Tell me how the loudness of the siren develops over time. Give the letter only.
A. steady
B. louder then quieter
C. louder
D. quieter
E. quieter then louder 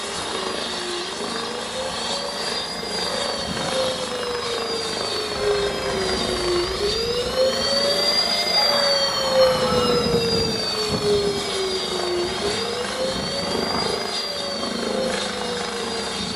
B.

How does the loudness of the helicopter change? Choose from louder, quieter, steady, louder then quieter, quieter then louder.
steady.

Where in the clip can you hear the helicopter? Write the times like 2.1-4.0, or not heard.
0.0-16.3.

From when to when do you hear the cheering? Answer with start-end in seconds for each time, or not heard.
8.4-10.1.